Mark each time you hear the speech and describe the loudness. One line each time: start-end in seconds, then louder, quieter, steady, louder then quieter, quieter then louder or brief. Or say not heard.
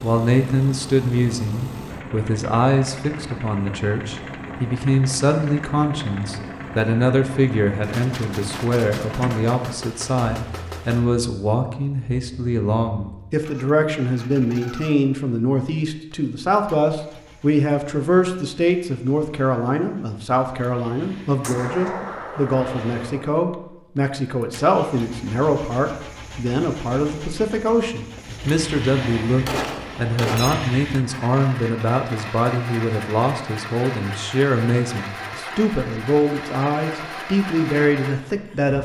0.0-38.7 steady.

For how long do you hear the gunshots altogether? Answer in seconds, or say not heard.
7 s.